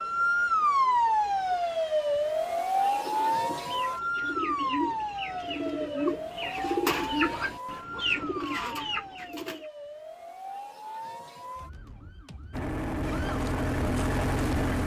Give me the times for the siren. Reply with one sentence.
You can hear the siren from 0.0 to 14.8 s.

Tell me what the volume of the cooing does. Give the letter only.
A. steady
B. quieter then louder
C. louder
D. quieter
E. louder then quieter
C.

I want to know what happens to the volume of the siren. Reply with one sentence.
The loudness of the siren goes down.